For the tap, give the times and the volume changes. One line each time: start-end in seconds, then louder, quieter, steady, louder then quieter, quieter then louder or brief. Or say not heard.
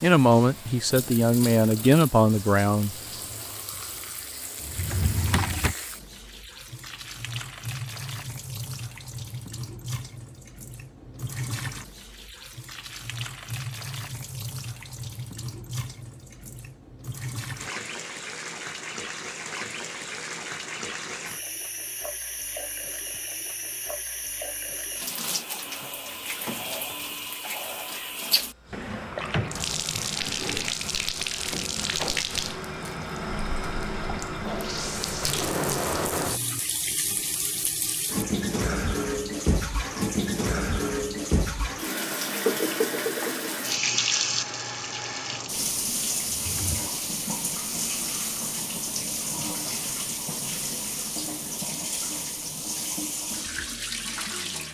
0.0-54.6 louder.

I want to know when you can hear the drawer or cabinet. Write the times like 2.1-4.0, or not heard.
4.6-5.8, 28.7-30.8, 46.4-46.9.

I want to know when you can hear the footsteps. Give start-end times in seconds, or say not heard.
not heard.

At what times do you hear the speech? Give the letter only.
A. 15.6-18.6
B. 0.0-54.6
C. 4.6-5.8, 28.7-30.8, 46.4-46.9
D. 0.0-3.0
D.